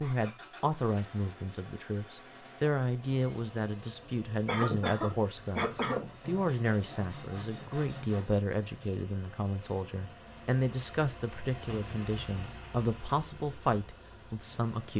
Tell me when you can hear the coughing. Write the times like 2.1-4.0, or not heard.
4.5-6.1.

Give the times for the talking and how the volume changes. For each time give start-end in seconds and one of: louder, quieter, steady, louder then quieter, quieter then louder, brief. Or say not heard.
0.0-14.9 steady.